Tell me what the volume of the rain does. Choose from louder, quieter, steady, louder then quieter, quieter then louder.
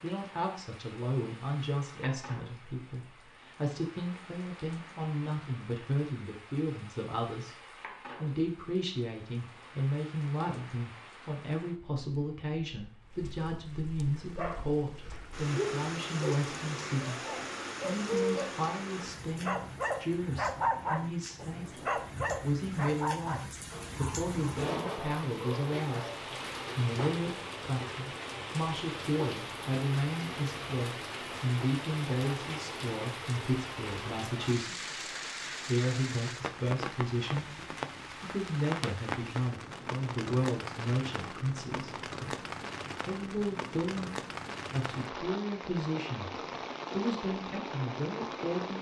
louder.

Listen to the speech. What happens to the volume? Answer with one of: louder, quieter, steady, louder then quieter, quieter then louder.
steady.